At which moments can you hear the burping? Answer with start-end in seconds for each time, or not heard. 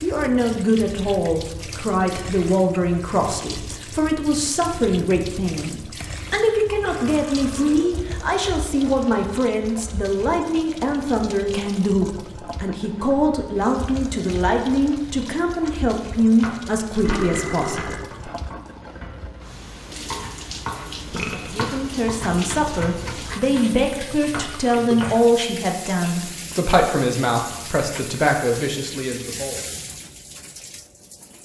6.8-8.0, 16.9-18.3, 21.1-21.6.